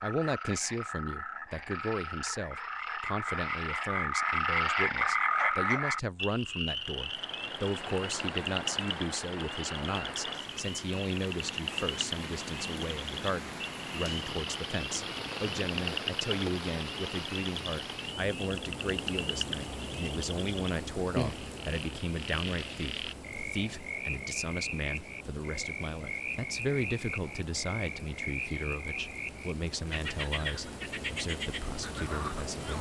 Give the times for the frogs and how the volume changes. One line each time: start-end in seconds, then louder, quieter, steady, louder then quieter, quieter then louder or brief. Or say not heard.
0.0-32.7 quieter.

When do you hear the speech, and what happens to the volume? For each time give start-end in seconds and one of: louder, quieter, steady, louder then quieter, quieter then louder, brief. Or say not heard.
0.0-32.7 steady.